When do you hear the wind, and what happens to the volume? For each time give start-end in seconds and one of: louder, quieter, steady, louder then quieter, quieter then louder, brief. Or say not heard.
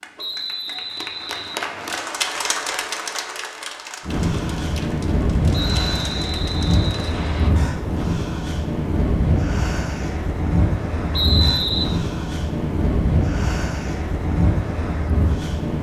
4.0-15.7 steady.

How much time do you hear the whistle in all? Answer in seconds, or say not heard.
4 s.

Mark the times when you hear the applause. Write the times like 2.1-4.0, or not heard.
0.0-7.1.